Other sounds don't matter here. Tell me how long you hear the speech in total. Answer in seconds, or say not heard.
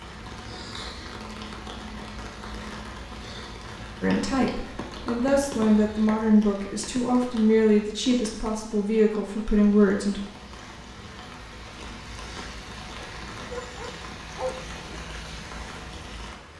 6 s.